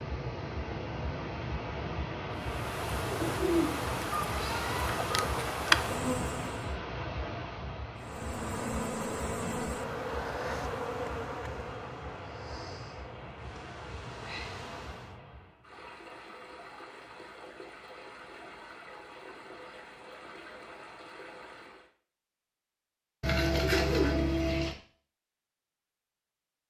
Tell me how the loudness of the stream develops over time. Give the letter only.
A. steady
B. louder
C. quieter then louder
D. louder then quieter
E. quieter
E.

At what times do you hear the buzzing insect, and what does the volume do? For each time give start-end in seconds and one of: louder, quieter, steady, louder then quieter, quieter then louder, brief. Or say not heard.
2.4-6.8 louder
8.0-15.2 quieter.